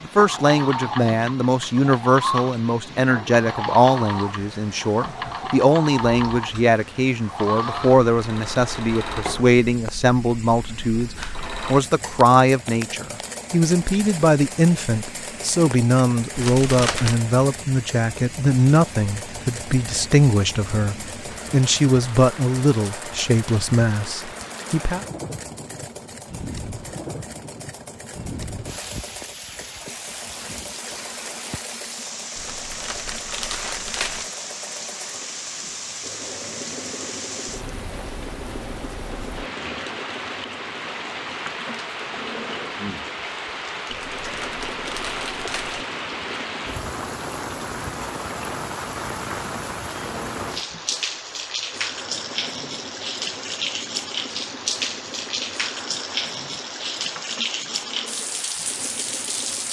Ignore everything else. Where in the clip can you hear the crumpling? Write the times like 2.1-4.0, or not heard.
16.3-17.2, 32.4-34.2, 43.9-45.9.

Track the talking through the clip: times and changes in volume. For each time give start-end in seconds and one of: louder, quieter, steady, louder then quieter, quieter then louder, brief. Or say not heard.
0.0-25.1 steady.